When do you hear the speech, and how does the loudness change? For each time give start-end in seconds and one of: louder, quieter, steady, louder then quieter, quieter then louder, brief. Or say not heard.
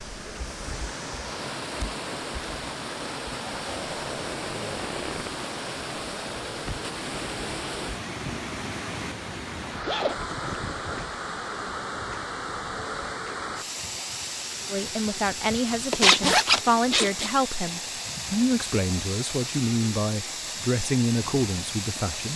14.7-22.3 steady.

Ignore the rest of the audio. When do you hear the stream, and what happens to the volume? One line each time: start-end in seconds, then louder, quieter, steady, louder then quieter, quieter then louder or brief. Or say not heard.
0.0-22.3 steady.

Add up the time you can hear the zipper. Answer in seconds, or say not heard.
4 s.